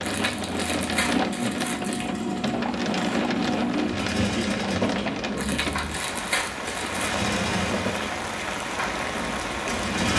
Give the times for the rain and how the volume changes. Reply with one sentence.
The rain can be heard from 0.0 to 10.1 s, at a steady volume.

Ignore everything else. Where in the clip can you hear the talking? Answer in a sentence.
The talking can't be heard in this clip.